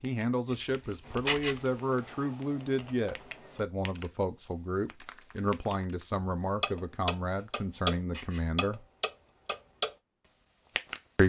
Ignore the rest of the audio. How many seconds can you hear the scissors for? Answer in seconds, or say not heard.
2 s.